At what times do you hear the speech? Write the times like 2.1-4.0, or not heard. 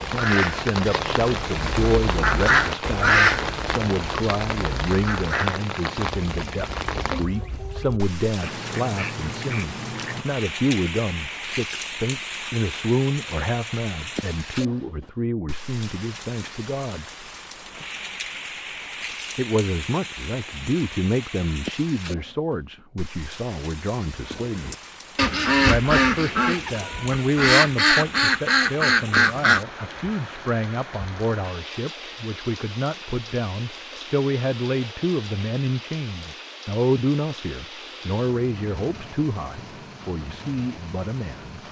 0.0-17.1, 19.4-24.8, 25.6-41.6.